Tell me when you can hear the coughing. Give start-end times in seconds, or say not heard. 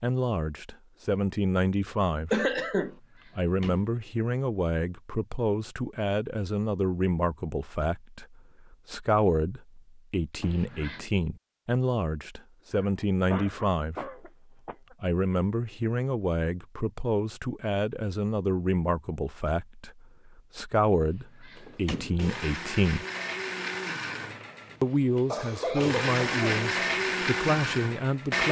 2.3-3.0, 12.7-14.9, 25.2-26.7.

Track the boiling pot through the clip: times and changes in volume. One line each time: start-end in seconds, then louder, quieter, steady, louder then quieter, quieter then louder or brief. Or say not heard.
not heard.